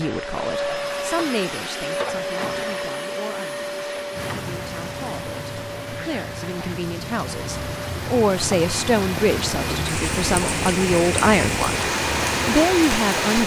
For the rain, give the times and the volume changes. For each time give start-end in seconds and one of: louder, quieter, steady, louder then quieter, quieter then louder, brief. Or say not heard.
4.1-13.4 louder.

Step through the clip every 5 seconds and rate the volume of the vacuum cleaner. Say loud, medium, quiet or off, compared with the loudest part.
loud, medium, loud.